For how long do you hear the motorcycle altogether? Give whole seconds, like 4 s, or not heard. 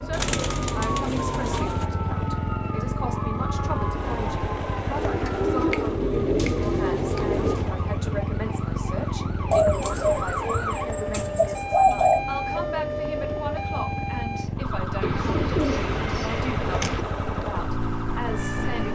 19 s.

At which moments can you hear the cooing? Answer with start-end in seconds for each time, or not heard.
0.1-1.9, 5.0-7.7, 9.5-12.2, 15.0-17.1.